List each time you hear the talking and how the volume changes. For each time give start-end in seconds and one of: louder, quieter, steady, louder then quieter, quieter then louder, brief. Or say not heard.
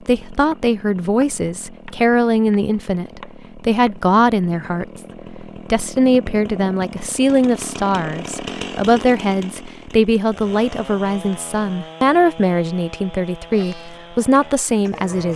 0.1-15.3 steady.